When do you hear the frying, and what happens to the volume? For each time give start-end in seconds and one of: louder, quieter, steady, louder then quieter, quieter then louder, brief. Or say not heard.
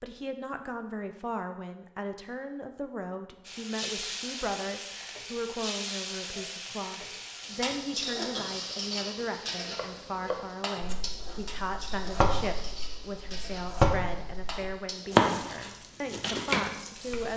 3.5-17.3 quieter.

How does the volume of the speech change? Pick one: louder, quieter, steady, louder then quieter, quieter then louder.
steady.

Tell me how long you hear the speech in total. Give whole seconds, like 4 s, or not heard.
17 s.